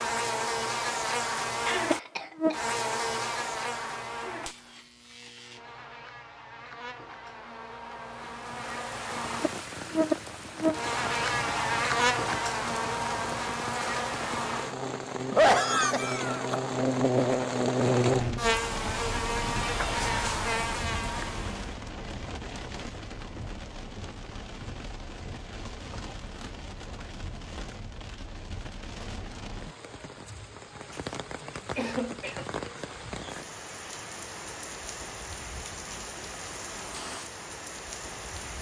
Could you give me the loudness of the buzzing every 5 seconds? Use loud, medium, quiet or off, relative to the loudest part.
loud, medium, loud, loud, loud, off, off, off.